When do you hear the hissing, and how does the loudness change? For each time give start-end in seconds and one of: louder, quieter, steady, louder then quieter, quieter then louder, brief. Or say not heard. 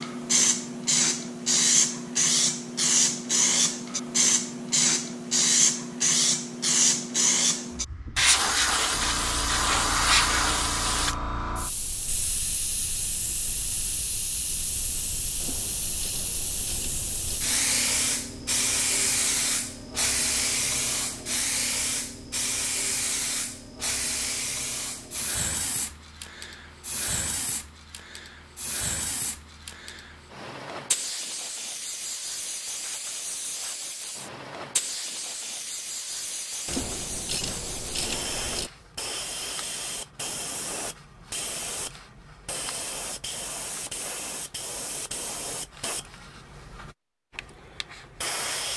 0.0-48.7 quieter.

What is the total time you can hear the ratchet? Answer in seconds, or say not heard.
4 s.